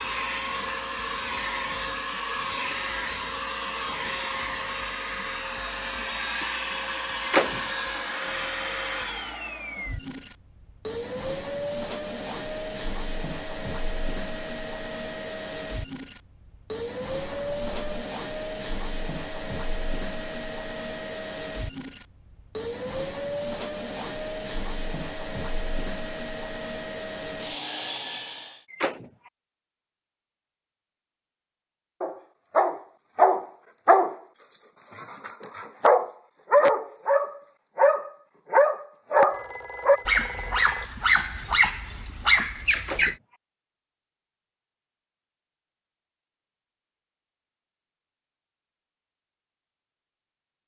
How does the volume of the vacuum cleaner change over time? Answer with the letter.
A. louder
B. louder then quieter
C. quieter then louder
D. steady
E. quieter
D.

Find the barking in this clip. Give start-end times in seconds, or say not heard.
32.0-43.1.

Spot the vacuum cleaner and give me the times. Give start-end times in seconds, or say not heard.
0.0-28.6.